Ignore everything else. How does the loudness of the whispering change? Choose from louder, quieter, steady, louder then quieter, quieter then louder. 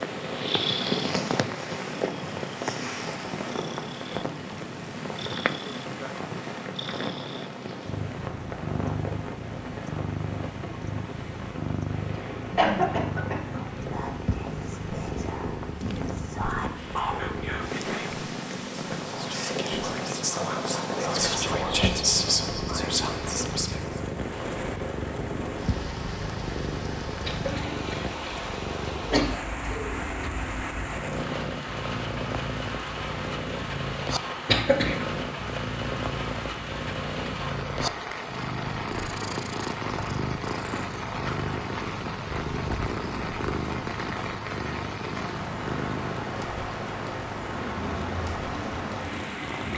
louder.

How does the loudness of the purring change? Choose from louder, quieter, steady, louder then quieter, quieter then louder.
steady.